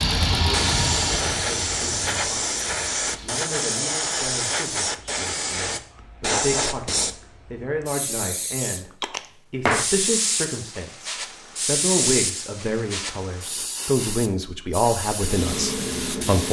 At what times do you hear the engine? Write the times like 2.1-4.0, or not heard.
0.0-3.5.